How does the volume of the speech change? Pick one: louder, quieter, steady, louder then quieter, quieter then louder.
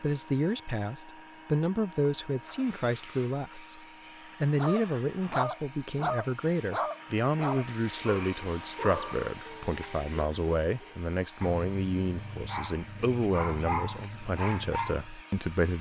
steady.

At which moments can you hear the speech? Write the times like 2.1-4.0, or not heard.
0.0-3.8, 4.4-15.7.